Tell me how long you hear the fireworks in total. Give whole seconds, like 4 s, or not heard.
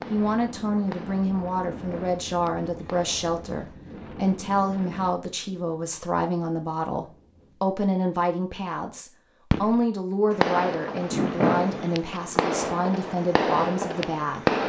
9 s.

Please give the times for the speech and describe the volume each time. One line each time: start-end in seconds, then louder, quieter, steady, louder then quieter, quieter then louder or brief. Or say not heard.
0.1-14.4 steady.